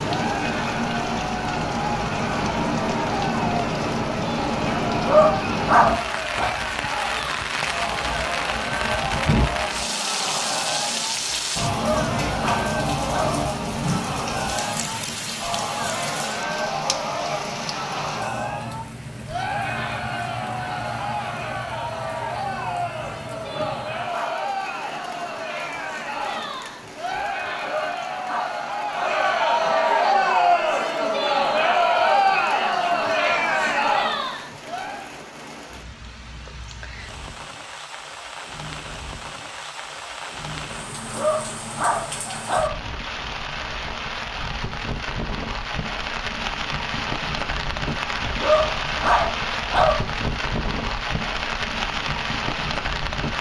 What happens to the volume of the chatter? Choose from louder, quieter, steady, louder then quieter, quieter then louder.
louder.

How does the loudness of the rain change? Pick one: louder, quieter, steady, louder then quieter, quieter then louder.
quieter then louder.